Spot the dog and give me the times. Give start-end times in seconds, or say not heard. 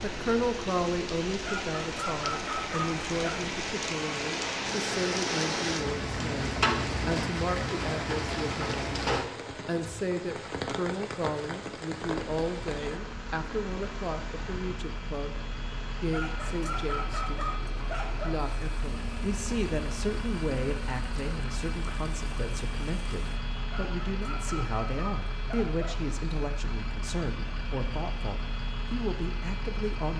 1.4-3.4, 16.1-18.4, 23.7-26.1.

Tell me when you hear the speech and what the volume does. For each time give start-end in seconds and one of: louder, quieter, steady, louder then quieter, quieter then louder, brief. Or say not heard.
0.0-30.1 steady.